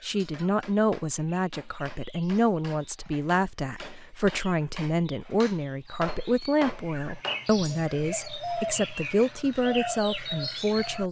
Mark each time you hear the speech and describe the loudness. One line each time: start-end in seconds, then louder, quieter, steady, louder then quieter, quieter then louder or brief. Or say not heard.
0.0-11.0 steady.